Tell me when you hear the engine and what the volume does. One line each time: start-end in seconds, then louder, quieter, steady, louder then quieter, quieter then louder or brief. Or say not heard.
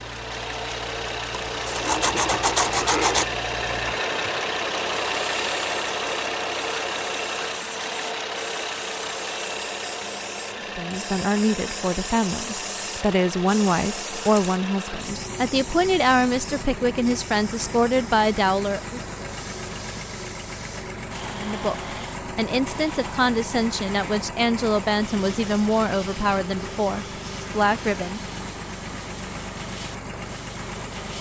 0.0-31.1 quieter.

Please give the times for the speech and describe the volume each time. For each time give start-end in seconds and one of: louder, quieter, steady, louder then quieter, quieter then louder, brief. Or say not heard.
10.8-19.0 steady
21.3-28.2 steady.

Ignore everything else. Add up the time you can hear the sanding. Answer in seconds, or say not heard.
2 s.